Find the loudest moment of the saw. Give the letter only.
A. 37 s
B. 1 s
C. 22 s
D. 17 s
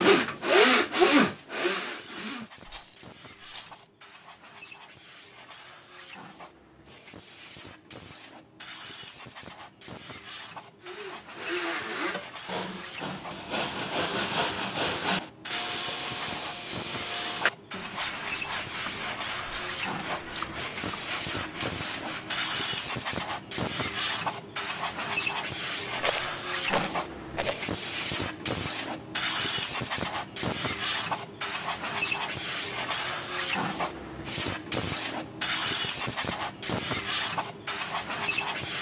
B.